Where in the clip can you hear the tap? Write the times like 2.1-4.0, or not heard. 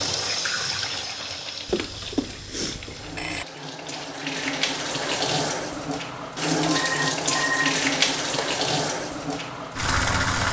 0.0-10.4.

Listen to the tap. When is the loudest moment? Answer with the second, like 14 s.
8 s.